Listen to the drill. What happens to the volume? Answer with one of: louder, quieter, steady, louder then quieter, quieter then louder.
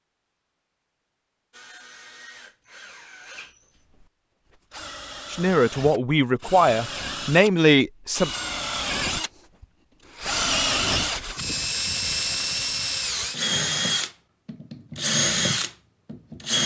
louder.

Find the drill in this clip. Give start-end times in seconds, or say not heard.
1.5-16.6.